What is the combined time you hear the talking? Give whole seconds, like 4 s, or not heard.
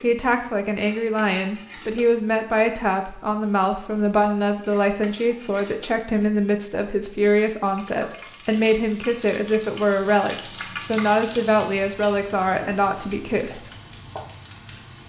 14 s.